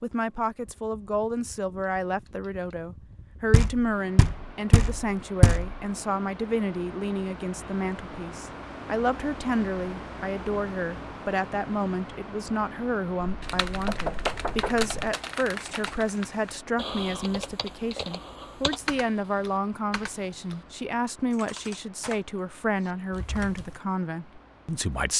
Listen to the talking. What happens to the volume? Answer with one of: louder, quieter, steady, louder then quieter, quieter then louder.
steady.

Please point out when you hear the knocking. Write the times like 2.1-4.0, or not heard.
3.5-5.8, 13.2-15.2.